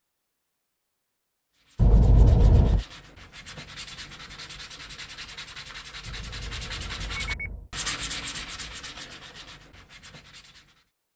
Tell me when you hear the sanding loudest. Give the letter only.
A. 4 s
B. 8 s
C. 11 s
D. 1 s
B.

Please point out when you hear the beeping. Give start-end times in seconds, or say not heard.
1.8-2.9, 6.0-7.7.